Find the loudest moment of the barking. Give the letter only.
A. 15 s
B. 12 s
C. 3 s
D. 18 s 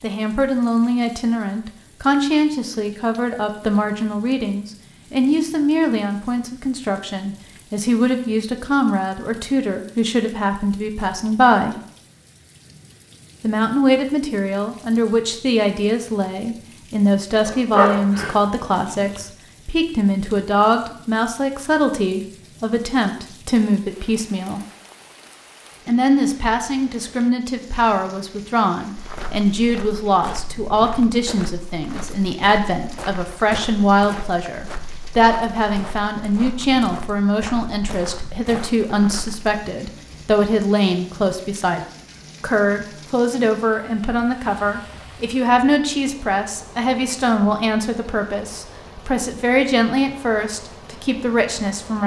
D.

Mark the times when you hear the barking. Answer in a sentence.
The barking can be heard from 17.4 to 19.2 s.